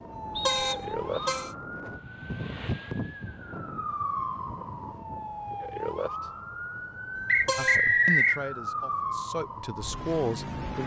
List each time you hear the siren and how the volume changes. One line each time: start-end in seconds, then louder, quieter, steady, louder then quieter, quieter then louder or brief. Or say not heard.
0.0-10.8 steady.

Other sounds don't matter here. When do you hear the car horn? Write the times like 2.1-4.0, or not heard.
0.1-1.6, 7.2-7.8.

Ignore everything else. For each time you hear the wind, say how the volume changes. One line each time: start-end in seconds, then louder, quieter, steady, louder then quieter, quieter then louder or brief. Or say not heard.
0.0-5.6 louder then quieter.